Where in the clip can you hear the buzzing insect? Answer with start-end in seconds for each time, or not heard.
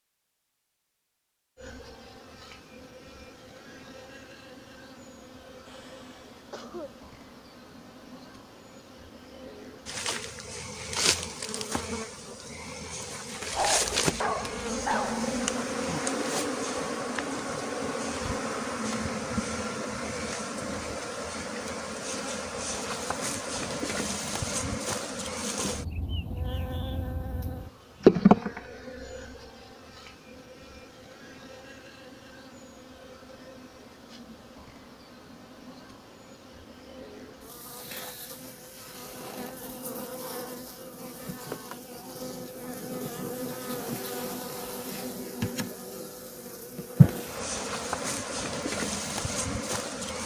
1.6-50.2.